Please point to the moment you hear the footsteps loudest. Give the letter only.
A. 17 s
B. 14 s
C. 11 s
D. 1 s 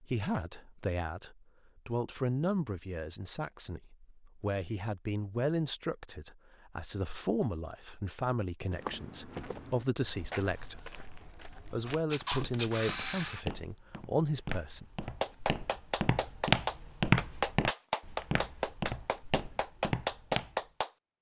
A.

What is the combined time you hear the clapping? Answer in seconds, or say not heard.
6 s.